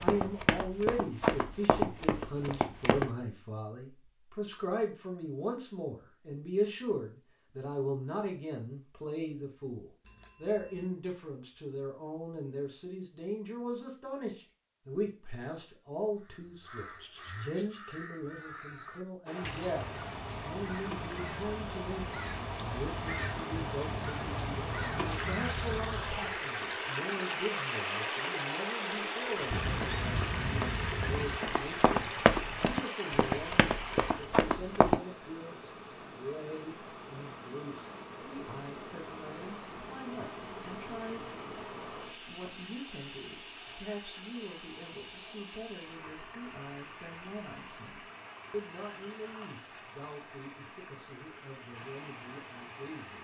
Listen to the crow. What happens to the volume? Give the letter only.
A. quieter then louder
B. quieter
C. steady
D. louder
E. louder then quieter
D.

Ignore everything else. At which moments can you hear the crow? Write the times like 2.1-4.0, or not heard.
16.1-26.4.